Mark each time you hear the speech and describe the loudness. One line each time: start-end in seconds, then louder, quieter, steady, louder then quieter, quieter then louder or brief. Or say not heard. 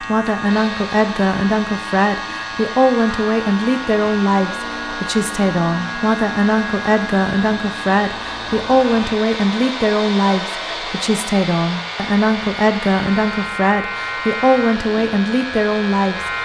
0.0-16.2 steady.